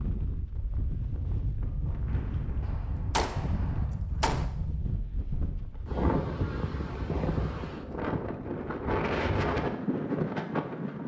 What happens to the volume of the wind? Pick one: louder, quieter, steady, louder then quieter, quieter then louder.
louder.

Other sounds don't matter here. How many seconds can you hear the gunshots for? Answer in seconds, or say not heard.
2 s.